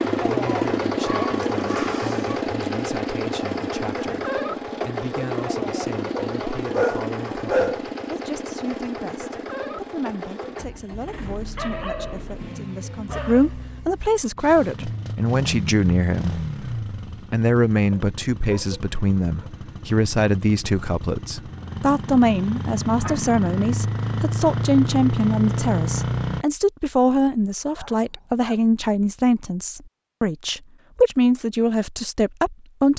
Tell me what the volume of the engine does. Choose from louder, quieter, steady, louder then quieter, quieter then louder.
quieter then louder.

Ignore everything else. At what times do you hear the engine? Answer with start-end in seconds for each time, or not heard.
0.0-26.4.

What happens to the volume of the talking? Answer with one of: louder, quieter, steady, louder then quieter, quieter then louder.
louder.